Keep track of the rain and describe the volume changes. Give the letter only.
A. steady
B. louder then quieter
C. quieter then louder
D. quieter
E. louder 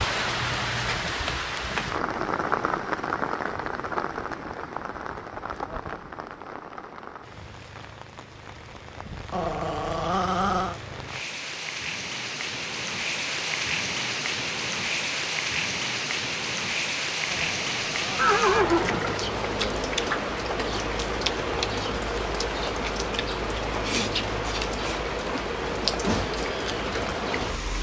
C.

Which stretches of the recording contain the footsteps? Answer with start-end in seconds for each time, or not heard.
not heard.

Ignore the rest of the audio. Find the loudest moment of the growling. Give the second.
10 s.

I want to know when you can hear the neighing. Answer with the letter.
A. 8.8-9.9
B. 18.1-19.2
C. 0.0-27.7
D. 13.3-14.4
B.